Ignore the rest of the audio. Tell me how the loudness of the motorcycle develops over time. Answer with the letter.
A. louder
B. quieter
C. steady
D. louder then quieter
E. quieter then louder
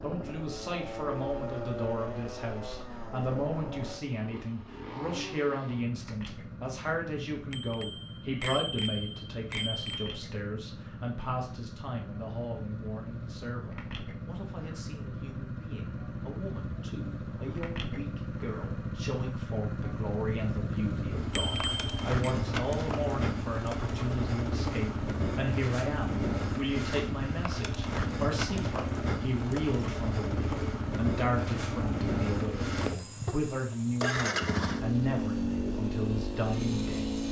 A.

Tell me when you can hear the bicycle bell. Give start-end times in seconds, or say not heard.
7.5-10.2, 21.4-22.3, 32.9-33.6.